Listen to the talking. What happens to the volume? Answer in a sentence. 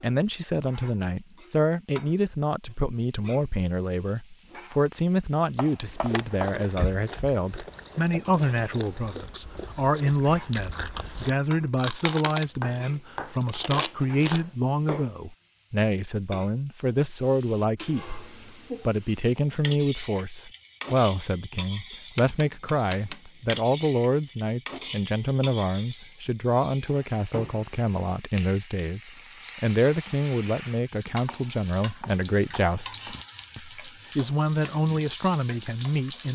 The volume of the talking stays about the same.